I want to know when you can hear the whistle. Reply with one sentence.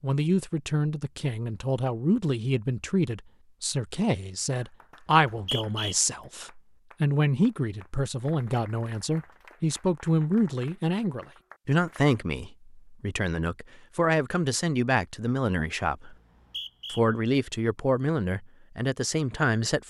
You can hear the whistle from 5.2 to 6.0 s and from 16.1 to 17.0 s.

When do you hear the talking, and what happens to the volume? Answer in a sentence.
You can hear the talking from 0.0 to 16.1 s, at a steady volume; and briefly from 16.9 to 19.8 s.